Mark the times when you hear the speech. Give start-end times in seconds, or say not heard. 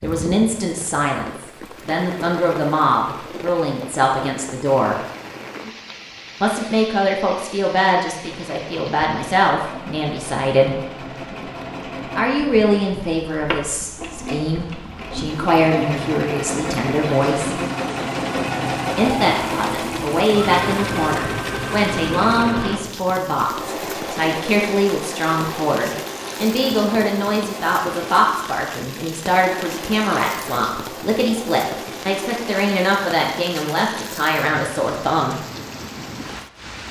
0.0-5.0, 6.4-10.8, 12.2-17.6, 18.9-35.4.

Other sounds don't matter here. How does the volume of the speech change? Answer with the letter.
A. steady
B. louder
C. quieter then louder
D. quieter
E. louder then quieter
A.